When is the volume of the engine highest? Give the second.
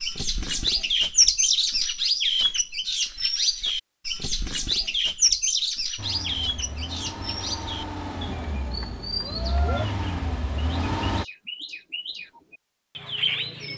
11 s.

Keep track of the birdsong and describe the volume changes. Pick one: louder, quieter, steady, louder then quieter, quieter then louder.
quieter.